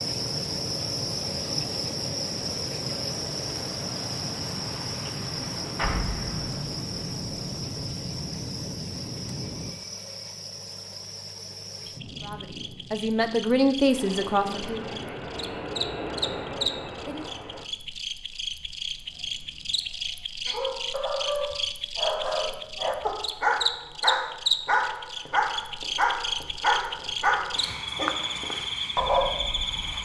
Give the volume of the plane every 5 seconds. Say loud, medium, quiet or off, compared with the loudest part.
loud, loud, medium, loud, off, off.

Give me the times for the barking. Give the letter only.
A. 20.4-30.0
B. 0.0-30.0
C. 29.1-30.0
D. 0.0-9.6
A.